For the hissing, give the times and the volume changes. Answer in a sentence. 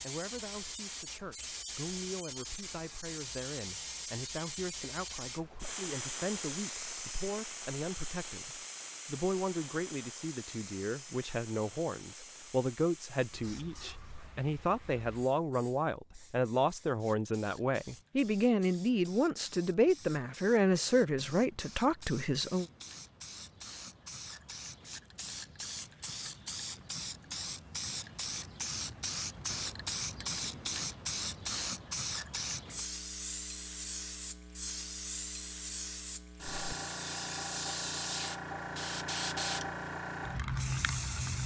You can hear the hissing from 0.0 to 41.4 s, getting quieter then louder.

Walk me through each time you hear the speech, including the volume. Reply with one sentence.
The speech can be heard from 0.0 to 22.6 s, getting louder.